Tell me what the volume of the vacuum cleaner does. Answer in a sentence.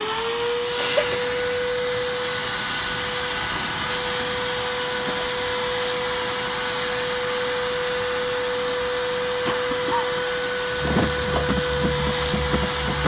The volume of the vacuum cleaner stays about the same.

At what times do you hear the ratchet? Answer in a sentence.
You can hear the ratchet from 10.7 to 13.0 s.